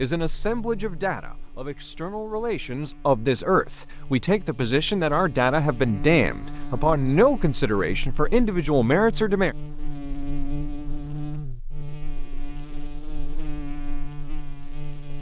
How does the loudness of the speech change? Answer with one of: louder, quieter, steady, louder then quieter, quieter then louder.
louder.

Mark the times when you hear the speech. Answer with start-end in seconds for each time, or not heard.
0.0-9.6.